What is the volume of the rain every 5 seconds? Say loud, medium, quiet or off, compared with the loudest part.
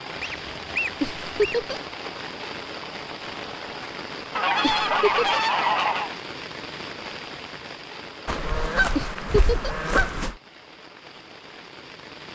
loud, loud, medium.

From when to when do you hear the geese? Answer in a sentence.
The geese can be heard from 0.2 to 1.6 s, from 4.3 to 6.2 s and from 8.2 to 10.3 s.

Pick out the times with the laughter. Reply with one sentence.
You can hear the laughter from 1.0 to 1.8 s, from 4.6 to 5.4 s and from 8.9 to 9.8 s.